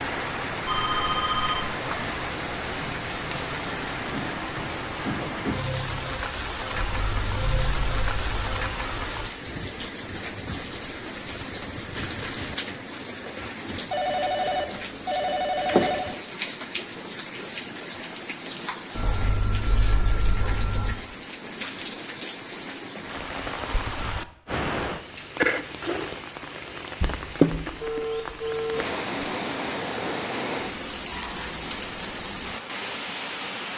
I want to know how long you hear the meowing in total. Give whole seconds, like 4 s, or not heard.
4 s.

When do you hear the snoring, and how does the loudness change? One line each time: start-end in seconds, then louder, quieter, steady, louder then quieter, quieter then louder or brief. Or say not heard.
not heard.